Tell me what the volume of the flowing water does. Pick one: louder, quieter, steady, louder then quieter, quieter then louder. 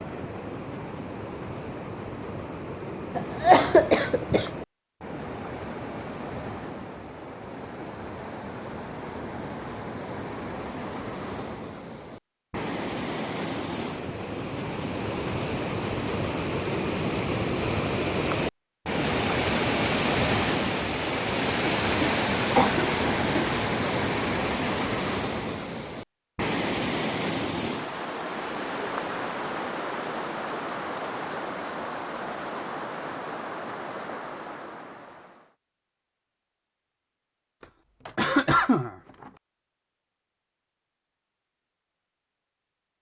louder then quieter.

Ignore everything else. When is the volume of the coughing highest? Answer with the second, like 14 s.
4 s.